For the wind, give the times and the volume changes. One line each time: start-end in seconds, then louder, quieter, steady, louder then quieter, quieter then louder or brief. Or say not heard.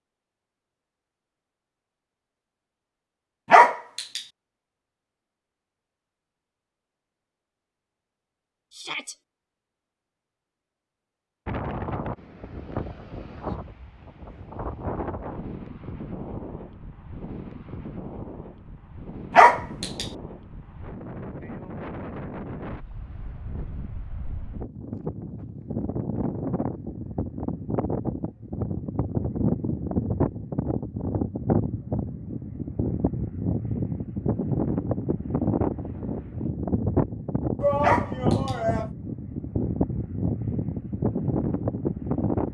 11.4-42.4 louder.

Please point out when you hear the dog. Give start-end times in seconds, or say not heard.
3.5-4.2, 19.4-20.1, 37.8-38.5.